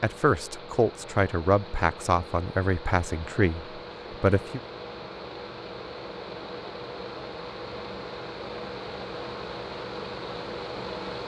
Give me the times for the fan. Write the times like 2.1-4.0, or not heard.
0.0-11.2.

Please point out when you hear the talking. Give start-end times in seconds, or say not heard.
0.0-4.6.